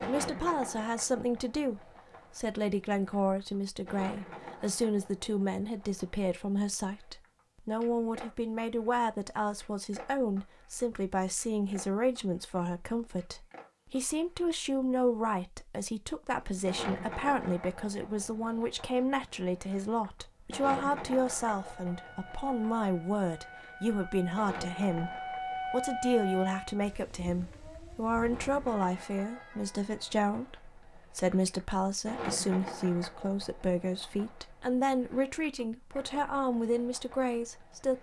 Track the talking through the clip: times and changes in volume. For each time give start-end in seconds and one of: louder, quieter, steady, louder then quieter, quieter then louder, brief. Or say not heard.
0.0-37.9 steady.